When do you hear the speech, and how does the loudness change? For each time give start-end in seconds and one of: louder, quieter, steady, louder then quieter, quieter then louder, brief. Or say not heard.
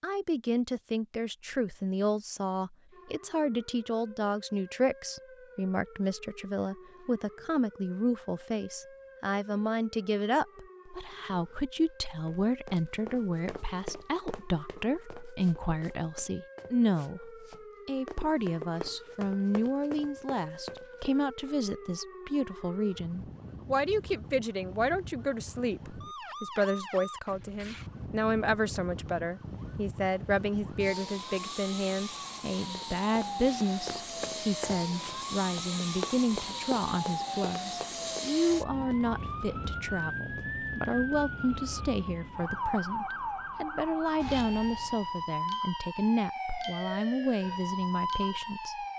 0.0-48.9 steady.